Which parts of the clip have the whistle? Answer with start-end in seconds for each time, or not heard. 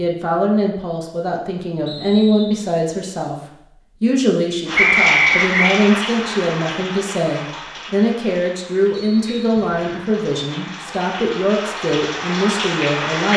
1.9-2.7, 4.8-5.8, 8.9-9.8.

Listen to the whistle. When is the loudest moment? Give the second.
5 s.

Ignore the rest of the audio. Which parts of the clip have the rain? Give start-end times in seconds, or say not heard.
4.7-13.3.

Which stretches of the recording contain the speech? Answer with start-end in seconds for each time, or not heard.
0.0-3.4, 4.0-13.3.